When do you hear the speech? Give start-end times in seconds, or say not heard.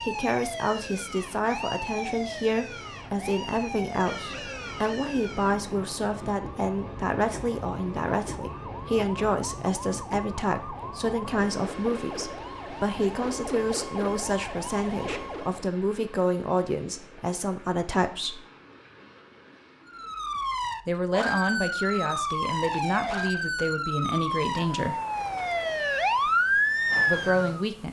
0.0-18.4, 20.9-25.0, 27.1-27.8.